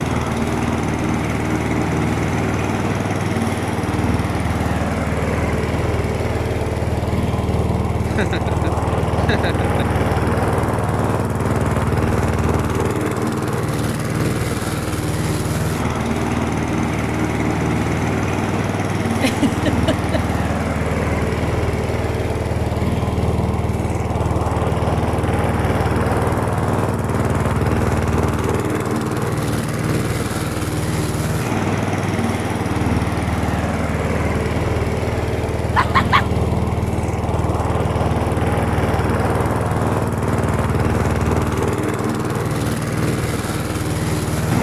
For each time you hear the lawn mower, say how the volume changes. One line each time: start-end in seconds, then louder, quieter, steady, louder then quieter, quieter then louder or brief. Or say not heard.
0.0-44.5 steady.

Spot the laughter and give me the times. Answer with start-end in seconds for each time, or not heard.
8.1-9.8, 19.1-20.2, 35.8-36.2.